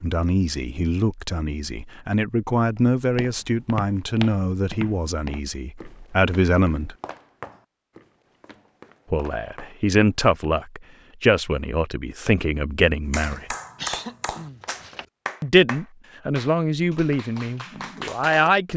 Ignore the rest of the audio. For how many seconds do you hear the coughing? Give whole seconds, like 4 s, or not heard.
2 s.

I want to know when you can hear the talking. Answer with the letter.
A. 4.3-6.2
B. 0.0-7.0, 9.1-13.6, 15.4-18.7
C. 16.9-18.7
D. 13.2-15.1
B.